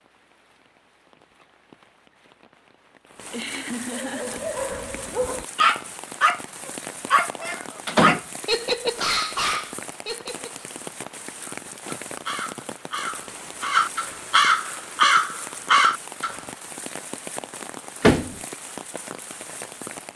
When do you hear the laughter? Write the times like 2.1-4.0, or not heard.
3.3-4.5.